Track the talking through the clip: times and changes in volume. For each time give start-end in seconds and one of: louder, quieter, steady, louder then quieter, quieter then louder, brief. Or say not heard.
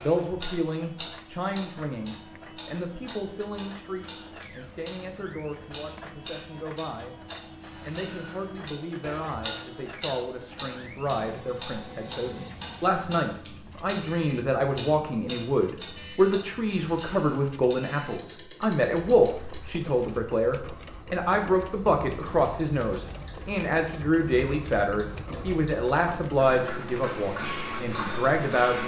0.0-7.2 quieter
7.8-28.8 louder.